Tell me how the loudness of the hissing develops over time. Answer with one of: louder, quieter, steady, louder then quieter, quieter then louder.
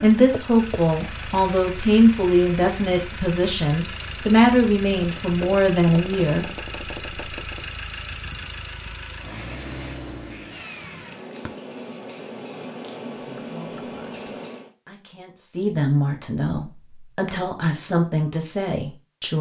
louder.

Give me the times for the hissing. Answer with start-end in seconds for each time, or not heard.
9.2-14.7.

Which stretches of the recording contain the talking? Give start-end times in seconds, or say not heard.
0.0-6.5, 13.2-19.3.